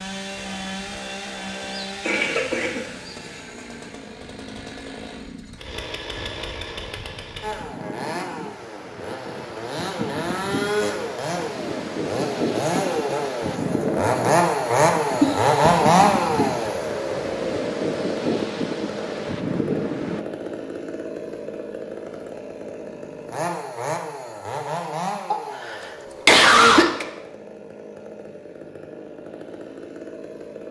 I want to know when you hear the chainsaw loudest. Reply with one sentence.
The volume of the chainsaw peaks at 16 seconds.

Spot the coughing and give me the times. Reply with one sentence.
The coughing can be heard from 1.6 to 3.1 s, from 15.2 to 15.8 s and from 25.3 to 27.1 s.